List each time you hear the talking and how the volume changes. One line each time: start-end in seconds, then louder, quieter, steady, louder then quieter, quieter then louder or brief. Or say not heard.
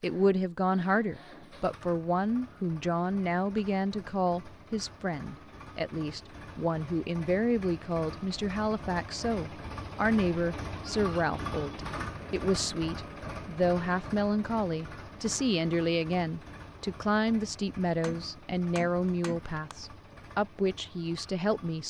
0.0-21.8 steady.